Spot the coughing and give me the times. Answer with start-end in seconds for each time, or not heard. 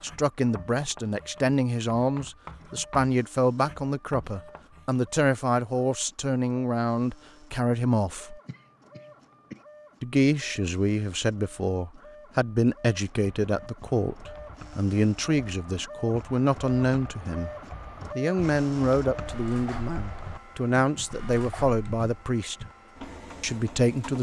8.4-9.7.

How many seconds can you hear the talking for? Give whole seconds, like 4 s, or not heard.
21 s.